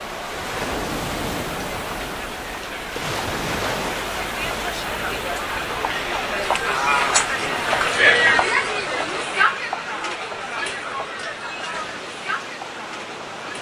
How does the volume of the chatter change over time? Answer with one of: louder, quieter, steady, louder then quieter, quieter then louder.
louder then quieter.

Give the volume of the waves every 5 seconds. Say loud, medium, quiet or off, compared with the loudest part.
loud, medium, medium.